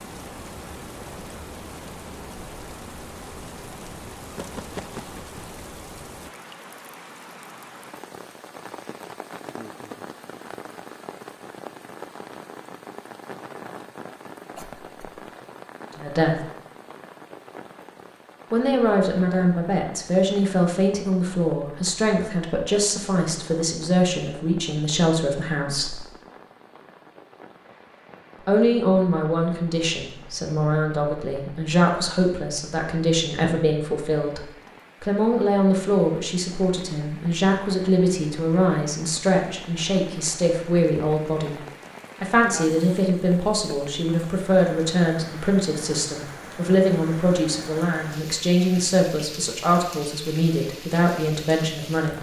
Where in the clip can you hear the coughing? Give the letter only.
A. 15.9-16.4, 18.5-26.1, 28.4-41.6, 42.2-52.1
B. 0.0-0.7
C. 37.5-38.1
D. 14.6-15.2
D.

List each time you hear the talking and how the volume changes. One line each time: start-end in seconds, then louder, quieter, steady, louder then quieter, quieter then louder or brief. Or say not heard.
15.9-16.4 brief
18.5-26.1 steady
28.4-41.6 steady
42.2-52.1 steady.